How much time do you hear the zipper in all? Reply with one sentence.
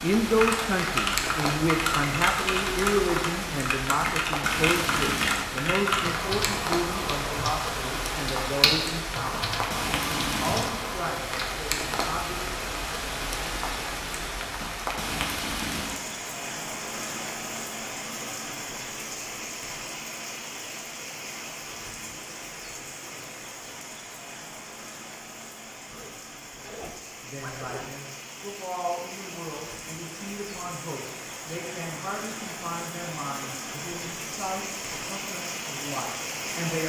You can hear the zipper for 2 seconds altogether.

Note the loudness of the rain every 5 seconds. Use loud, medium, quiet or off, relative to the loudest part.
loud, loud, loud, loud, medium, medium, medium, loud.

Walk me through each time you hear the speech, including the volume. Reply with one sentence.
The speech can be heard from 0.0 to 12.5 s, getting quieter; and from 27.2 to 36.8 s, at a steady volume.